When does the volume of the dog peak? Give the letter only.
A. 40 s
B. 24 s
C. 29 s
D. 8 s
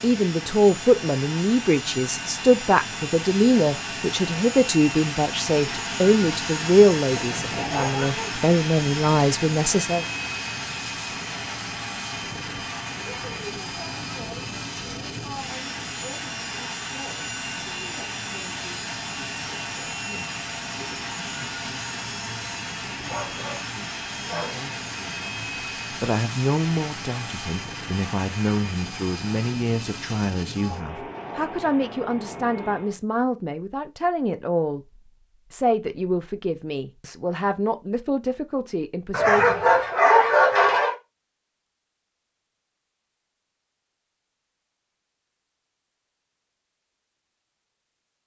A.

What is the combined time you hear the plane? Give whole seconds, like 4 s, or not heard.
33 s.